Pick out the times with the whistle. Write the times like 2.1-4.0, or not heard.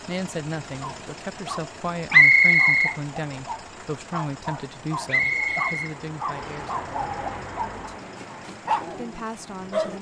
2.1-3.0, 5.0-6.7.